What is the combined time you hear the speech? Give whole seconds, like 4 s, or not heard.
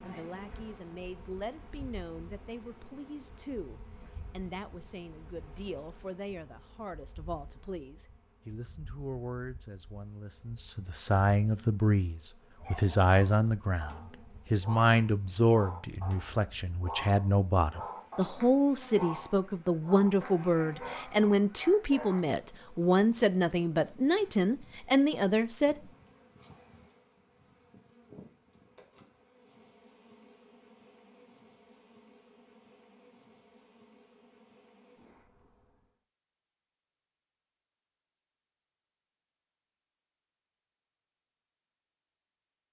26 s.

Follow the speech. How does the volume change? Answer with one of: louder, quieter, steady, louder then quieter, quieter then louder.
louder.